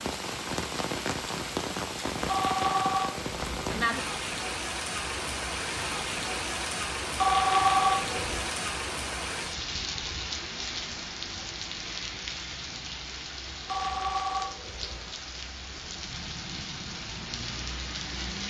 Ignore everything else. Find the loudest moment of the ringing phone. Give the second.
8 s.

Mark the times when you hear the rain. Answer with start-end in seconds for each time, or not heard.
0.0-18.4.